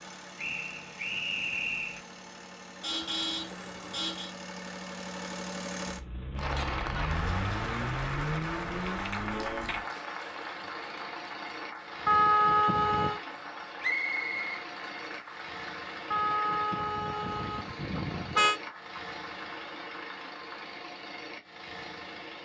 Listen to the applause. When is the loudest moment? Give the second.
7 s.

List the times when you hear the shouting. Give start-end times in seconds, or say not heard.
not heard.